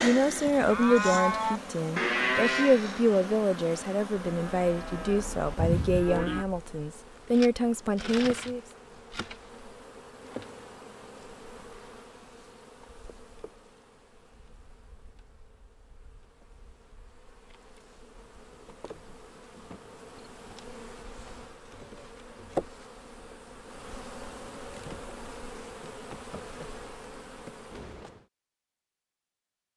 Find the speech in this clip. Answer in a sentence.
You can hear the speech from 0.0 to 8.6 s.